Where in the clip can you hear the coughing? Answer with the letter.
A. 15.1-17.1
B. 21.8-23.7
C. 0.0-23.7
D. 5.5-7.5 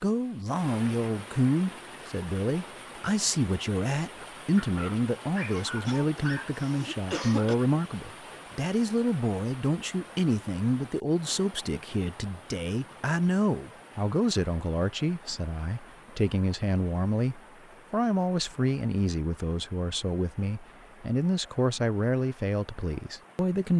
D.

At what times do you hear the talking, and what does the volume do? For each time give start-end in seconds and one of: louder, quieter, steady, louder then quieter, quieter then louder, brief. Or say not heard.
0.0-23.7 steady.